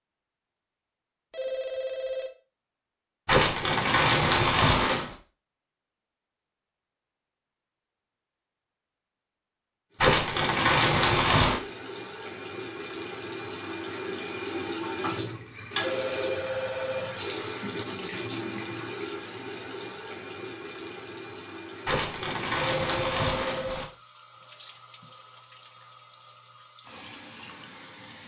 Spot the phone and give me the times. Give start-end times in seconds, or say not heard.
1.3-2.3, 15.8-17.2, 22.6-23.9.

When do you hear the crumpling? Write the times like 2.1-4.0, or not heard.
3.2-5.2, 10.0-11.6, 21.9-23.9.